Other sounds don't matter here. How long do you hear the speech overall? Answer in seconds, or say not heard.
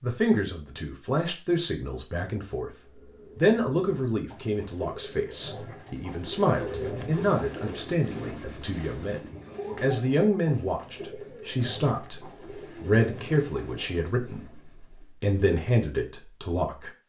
16 s.